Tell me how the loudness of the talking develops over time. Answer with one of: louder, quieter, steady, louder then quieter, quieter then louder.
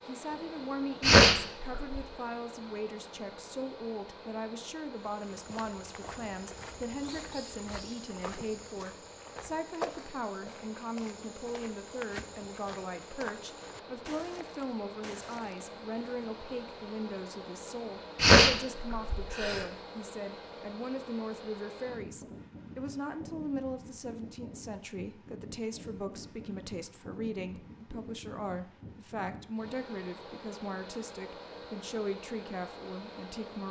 steady.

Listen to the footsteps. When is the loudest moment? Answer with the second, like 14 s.
10 s.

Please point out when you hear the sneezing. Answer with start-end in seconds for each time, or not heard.
1.0-2.0, 18.1-19.6.